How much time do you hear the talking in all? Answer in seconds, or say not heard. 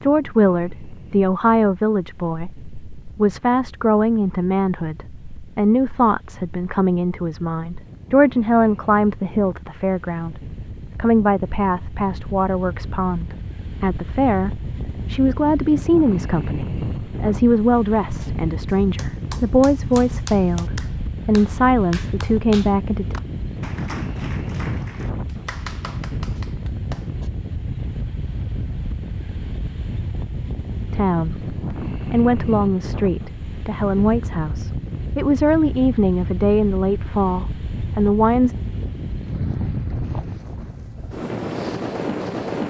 31 s.